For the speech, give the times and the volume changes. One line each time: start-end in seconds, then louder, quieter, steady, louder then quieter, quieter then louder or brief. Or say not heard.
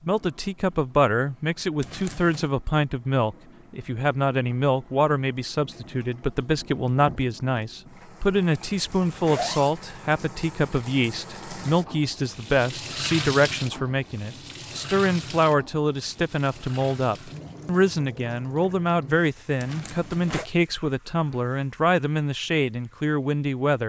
0.0-23.8 steady.